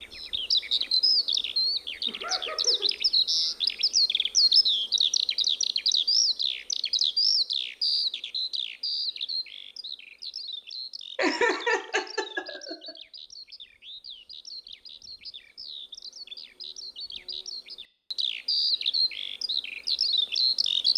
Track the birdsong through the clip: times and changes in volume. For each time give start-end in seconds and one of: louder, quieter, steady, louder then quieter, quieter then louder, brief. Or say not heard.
0.0-20.9 quieter then louder.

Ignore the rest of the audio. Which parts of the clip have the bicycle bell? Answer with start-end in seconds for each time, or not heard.
not heard.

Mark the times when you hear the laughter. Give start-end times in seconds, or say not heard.
2.0-2.9, 11.2-12.9.